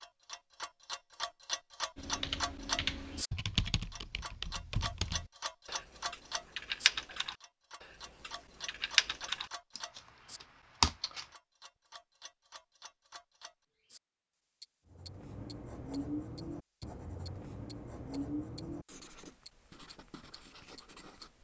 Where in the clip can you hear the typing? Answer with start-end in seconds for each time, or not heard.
1.9-11.2.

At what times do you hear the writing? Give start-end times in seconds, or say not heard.
14.9-21.3.